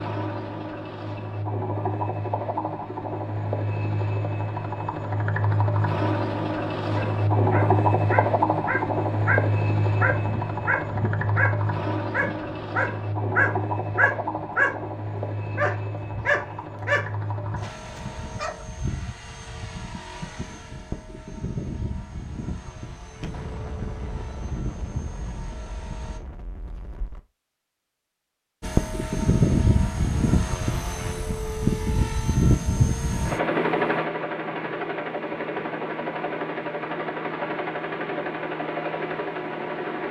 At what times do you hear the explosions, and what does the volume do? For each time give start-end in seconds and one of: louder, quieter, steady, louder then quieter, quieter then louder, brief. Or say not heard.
17.6-18.5 brief
23.2-27.2 quieter.